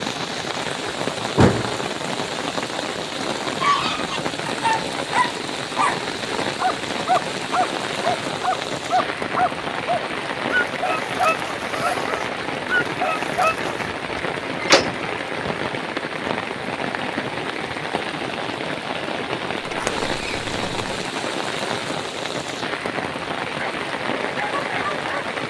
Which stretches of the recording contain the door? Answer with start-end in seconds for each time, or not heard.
1.4-1.8, 14.6-15.2, 19.6-21.0.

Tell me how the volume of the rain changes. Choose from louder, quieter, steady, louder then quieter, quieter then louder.
steady.